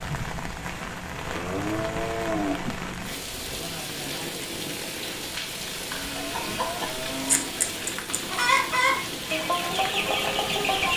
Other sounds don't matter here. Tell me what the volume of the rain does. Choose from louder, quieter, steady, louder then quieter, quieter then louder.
steady.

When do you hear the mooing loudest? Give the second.
2 s.